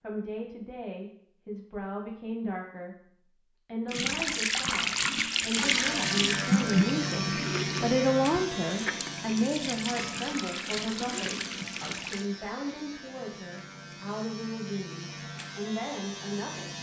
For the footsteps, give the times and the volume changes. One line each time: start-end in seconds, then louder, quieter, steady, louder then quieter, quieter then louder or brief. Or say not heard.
not heard.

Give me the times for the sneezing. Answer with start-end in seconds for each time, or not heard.
6.5-7.0.